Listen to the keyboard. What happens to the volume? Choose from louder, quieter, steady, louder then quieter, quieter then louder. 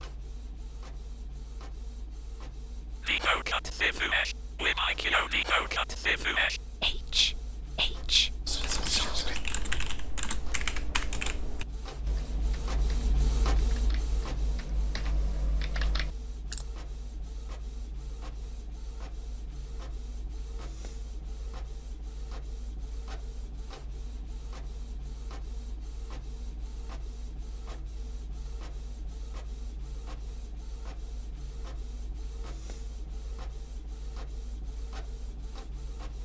quieter then louder.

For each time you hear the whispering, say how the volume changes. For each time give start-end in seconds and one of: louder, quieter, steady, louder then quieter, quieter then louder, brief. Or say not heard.
3.0-9.4 steady.